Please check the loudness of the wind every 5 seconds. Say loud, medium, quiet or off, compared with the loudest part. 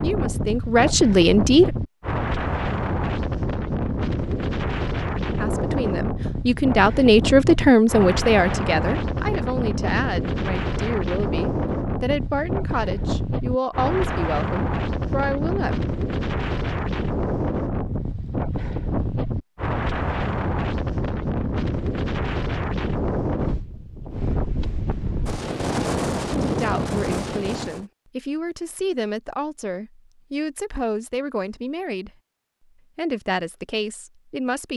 loud, loud, loud, loud, loud, loud, off.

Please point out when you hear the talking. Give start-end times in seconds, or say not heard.
0.0-1.7, 5.3-15.8, 26.4-32.1, 33.0-34.7.